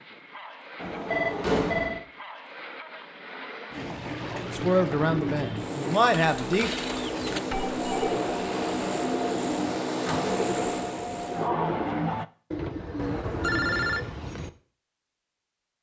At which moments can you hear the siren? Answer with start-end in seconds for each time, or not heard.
not heard.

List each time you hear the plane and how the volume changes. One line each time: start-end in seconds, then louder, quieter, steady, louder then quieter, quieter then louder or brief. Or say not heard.
0.0-12.2 louder.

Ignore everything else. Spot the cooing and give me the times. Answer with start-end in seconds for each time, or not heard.
3.7-14.5.